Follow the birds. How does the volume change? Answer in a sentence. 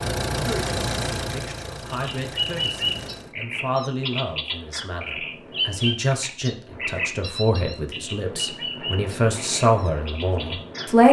The volume of the birds goes down.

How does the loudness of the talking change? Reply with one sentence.
The volume of the talking goes up.